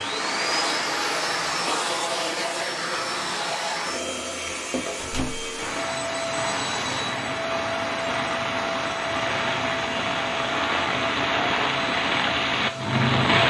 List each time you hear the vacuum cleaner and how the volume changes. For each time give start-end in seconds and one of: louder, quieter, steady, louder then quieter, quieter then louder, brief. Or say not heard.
0.0-13.3 quieter.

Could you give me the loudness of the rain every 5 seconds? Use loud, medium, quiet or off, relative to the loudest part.
off, medium, loud.